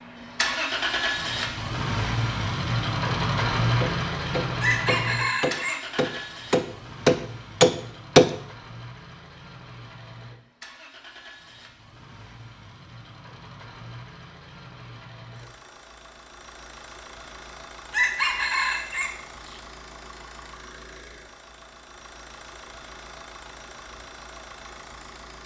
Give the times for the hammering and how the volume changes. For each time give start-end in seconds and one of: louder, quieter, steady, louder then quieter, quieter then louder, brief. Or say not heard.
3.8-8.3 louder.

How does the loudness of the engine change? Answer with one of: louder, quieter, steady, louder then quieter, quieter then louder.
quieter.